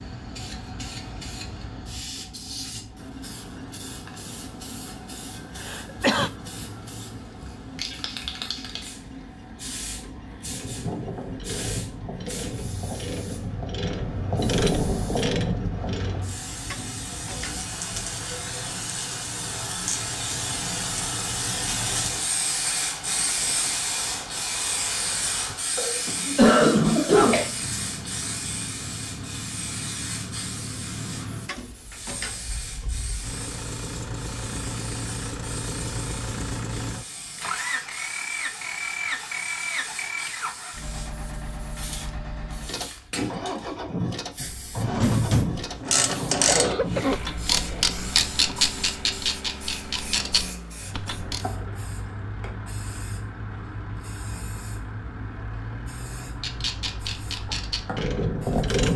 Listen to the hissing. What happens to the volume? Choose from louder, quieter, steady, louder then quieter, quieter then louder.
louder then quieter.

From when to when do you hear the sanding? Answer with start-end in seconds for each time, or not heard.
not heard.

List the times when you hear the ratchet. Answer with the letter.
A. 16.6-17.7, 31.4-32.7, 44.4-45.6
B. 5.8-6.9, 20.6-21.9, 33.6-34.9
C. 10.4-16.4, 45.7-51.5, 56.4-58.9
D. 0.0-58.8
C.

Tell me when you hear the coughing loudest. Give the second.
27 s.